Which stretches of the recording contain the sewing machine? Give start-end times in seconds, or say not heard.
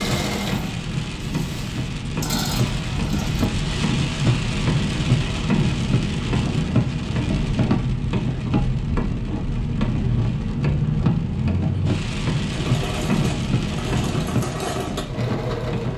0.0-3.5, 12.5-15.9.